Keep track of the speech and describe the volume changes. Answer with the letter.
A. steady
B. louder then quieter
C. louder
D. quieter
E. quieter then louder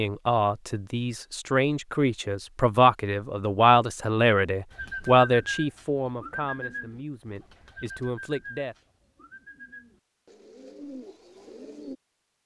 B.